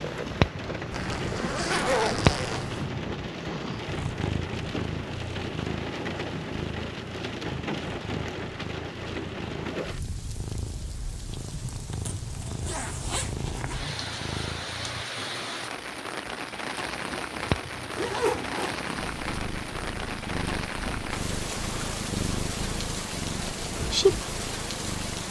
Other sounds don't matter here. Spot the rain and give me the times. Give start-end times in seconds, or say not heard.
0.0-25.2.